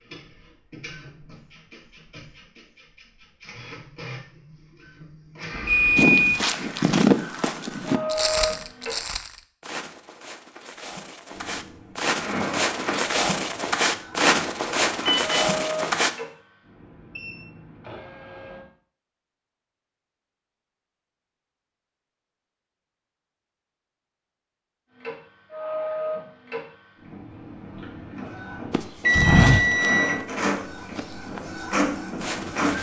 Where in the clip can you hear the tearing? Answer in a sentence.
You can't hear the tearing here.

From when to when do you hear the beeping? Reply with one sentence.
You can hear the beeping from 5.5 to 6.5 s, from 15.0 to 16.0 s and from 29.0 to 30.2 s.